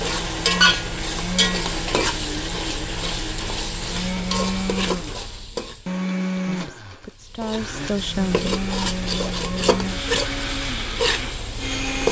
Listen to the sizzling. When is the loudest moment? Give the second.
1 s.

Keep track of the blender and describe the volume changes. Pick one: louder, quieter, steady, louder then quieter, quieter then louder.
steady.